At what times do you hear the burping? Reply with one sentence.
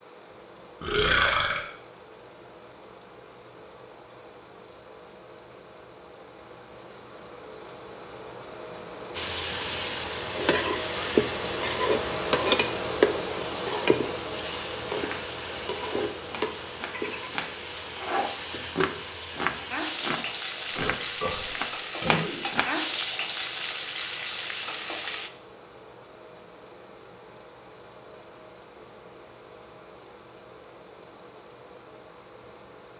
You can hear the burping from 0.8 to 1.6 s and from 20.8 to 22.5 s.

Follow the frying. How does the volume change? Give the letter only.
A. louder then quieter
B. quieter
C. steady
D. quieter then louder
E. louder
D.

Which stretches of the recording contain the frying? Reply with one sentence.
You can hear the frying from 9.2 to 25.3 s.